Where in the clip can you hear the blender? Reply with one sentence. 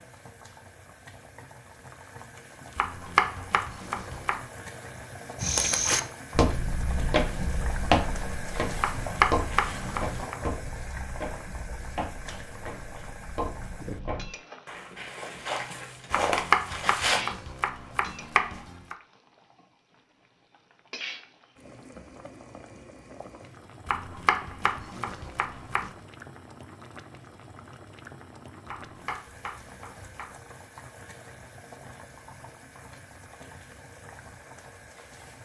The blender can't be heard in this clip.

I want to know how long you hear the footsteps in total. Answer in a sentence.
The footsteps can be heard for 12 seconds in total.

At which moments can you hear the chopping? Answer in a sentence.
You can hear the chopping from 2.8 to 4.3 s, from 8.8 to 10.3 s, from 16.1 to 18.9 s, from 23.9 to 25.9 s and from 28.6 to 30.3 s.